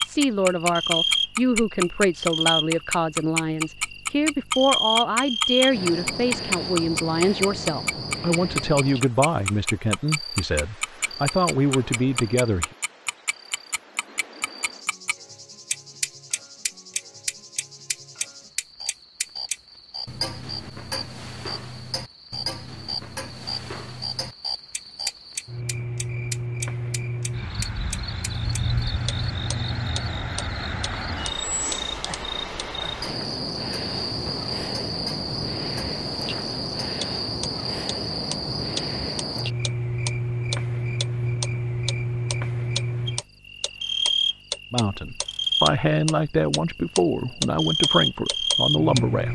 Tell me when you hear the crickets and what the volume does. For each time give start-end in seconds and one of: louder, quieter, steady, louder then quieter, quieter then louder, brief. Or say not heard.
0.0-49.3 quieter then louder.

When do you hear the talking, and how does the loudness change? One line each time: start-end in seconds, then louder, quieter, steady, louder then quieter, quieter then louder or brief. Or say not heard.
0.0-12.7 steady
44.7-49.3 steady.